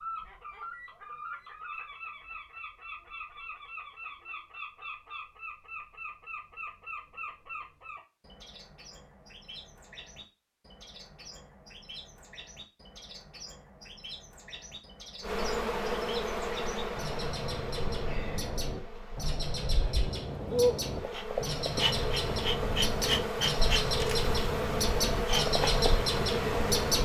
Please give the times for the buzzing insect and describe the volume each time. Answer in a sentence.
You can hear the buzzing insect from 15.2 to 27.0 s, getting quieter then louder.